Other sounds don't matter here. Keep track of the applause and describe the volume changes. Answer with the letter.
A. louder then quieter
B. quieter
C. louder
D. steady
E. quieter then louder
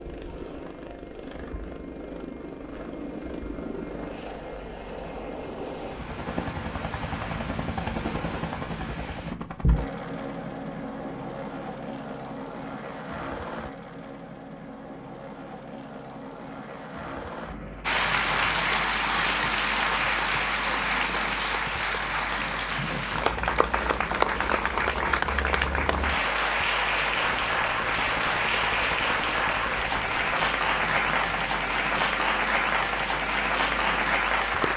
D.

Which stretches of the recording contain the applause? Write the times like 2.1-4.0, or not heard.
17.8-34.7.